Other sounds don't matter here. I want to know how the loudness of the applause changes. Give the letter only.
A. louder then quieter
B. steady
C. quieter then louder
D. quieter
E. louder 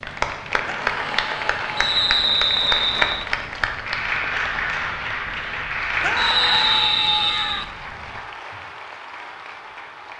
D.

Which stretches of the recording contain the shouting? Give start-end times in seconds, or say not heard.
0.7-2.2, 6.0-7.7.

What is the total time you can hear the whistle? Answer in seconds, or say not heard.
3 s.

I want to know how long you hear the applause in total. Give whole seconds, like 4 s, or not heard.
10 s.